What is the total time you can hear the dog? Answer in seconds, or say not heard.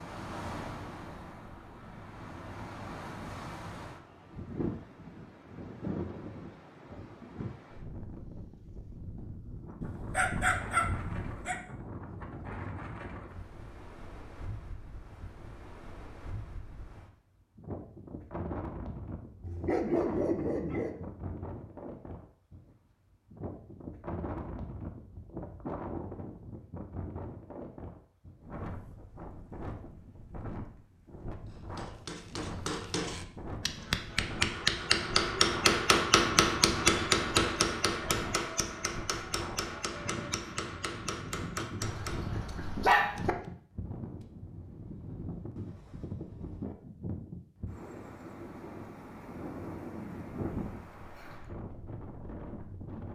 5 s.